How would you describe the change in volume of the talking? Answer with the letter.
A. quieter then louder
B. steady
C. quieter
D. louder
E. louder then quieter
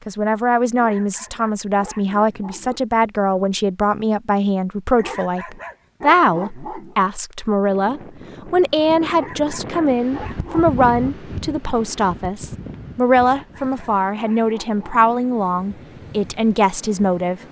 B.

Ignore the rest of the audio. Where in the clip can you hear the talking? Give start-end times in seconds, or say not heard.
0.1-17.4.